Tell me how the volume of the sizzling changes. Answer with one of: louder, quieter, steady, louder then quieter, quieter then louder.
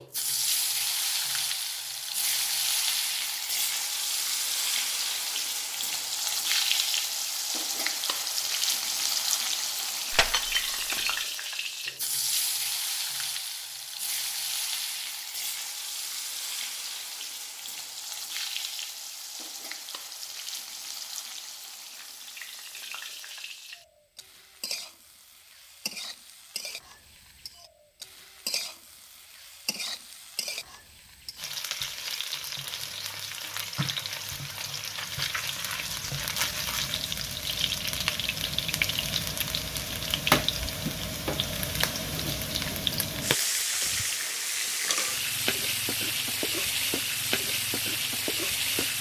quieter then louder.